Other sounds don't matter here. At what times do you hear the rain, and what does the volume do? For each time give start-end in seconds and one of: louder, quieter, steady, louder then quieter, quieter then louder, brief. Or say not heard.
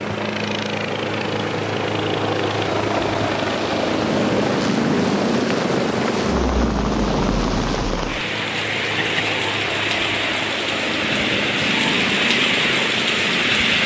0.0-13.8 louder.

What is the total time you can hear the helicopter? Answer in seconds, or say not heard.
14 s.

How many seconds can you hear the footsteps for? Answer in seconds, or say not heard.
not heard.